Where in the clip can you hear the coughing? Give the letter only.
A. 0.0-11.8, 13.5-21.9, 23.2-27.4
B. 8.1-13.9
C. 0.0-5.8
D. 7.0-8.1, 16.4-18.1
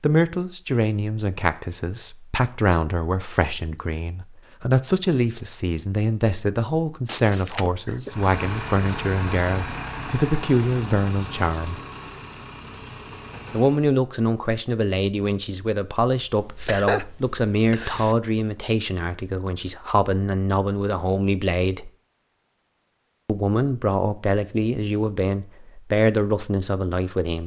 D.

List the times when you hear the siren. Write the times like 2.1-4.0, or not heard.
not heard.